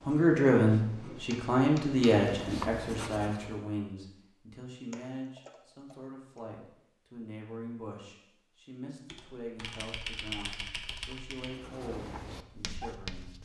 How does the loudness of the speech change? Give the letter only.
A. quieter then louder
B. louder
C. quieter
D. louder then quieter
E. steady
C.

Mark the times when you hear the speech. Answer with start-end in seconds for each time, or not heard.
0.1-13.3.